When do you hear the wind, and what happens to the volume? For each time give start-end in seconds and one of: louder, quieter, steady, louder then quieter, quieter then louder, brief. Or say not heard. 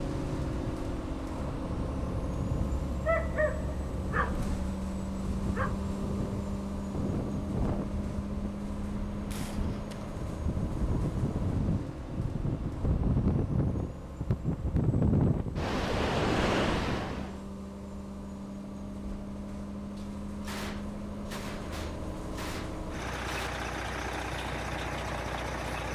0.1-17.4 louder.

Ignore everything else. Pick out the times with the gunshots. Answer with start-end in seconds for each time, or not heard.
9.3-10.2, 19.9-23.5.